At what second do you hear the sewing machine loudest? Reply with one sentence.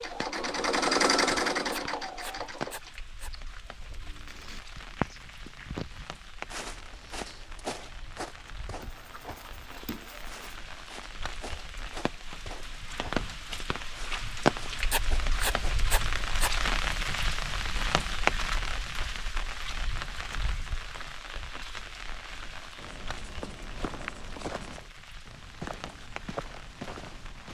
The loudest moment of the sewing machine is at 1 second.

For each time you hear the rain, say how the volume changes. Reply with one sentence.
You can hear the rain from 0.0 to 27.5 s, getting louder then quieter.